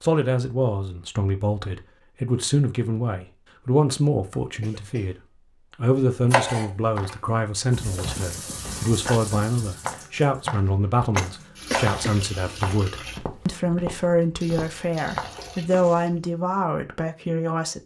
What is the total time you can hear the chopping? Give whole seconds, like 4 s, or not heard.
2 s.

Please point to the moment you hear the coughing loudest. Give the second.
12 s.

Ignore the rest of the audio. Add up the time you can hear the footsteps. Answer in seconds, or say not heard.
9 s.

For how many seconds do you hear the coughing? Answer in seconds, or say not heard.
2 s.